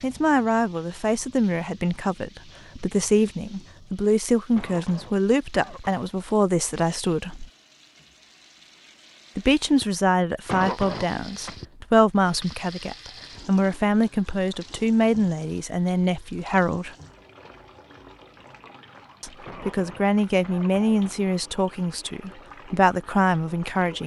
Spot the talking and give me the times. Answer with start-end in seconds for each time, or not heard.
0.0-7.5, 9.3-16.9, 19.2-24.0.